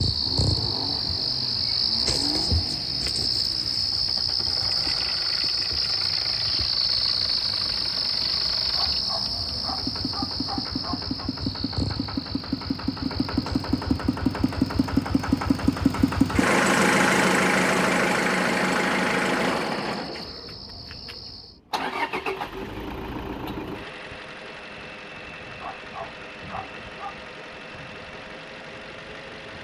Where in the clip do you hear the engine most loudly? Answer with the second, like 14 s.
17 s.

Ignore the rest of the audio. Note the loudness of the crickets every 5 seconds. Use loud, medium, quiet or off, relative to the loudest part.
loud, loud, medium, quiet, quiet, off.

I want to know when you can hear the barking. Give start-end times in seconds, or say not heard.
8.7-11.2, 25.6-27.2.